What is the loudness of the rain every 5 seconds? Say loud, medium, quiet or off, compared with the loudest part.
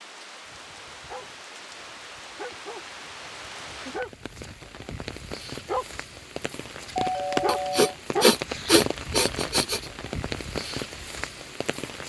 medium, loud, loud.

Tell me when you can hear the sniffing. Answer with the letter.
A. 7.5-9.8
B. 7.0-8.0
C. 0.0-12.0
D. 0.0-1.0
A.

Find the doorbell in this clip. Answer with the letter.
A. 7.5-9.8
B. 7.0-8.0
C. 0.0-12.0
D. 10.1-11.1
B.